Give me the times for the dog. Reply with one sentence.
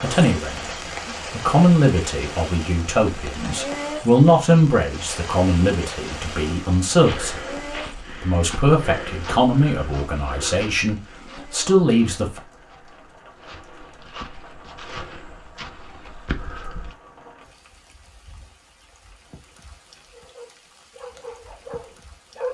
The dog can be heard from 20.1 to 22.4 s.